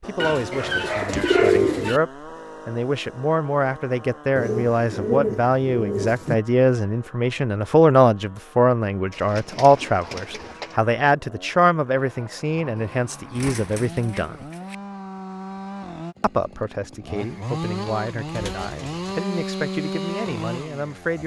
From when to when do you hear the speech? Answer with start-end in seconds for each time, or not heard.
0.0-14.4, 16.2-21.2.